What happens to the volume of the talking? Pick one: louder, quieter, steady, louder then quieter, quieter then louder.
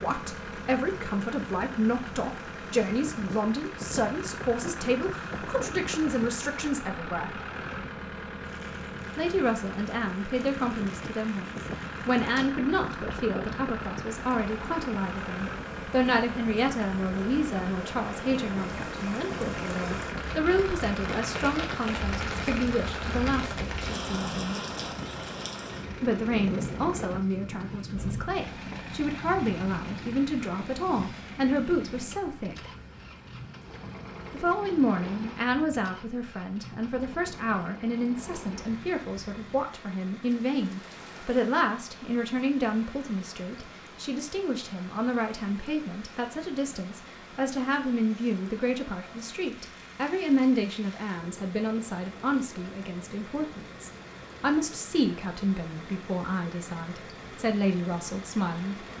steady.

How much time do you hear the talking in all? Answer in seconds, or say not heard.
54 s.